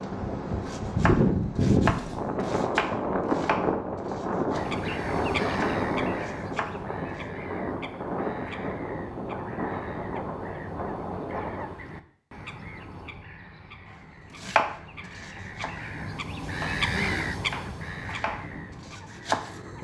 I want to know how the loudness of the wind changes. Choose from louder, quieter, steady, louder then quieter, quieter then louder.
quieter.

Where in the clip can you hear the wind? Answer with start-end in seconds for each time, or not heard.
0.0-11.8.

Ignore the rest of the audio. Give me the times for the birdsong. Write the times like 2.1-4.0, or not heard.
4.5-19.7.